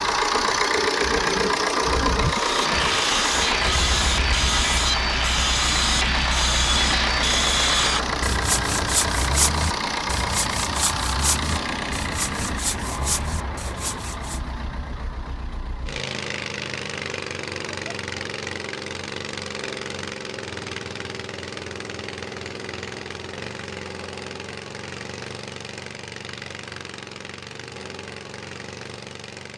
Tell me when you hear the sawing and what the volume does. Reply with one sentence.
The sawing can be heard from 2.2 to 14.4 s, getting quieter.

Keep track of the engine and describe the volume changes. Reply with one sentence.
The volume of the engine goes down.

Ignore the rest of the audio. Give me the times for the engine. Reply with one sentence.
The engine can be heard from 0.0 to 29.5 s.